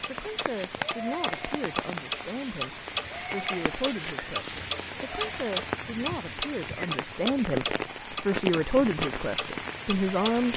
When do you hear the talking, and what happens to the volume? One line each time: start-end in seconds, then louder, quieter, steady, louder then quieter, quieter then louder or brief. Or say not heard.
0.1-10.5 louder.